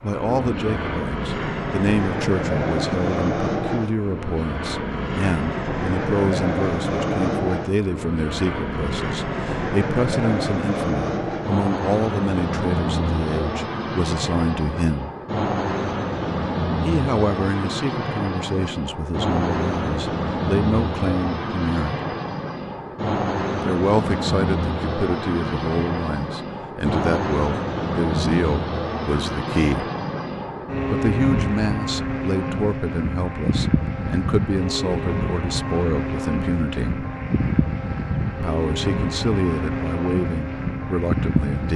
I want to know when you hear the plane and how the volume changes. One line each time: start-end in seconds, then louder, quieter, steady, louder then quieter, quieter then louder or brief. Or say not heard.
0.0-41.7 steady.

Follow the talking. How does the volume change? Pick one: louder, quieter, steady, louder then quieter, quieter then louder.
steady.